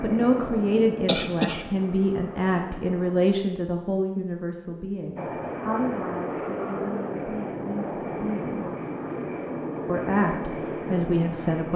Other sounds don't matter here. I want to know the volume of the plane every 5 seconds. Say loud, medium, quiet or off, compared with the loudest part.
medium, loud, loud.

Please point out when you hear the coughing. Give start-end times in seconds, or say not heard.
1.1-1.7.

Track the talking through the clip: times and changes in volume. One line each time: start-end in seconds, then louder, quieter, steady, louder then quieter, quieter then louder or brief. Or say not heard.
0.0-8.6 quieter
9.8-11.7 brief.